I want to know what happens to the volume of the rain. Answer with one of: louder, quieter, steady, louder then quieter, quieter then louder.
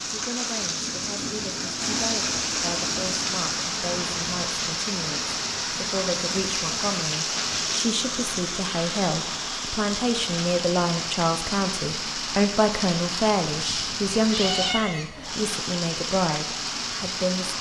steady.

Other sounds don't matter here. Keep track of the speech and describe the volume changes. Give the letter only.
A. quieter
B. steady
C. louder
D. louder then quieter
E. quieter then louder
C.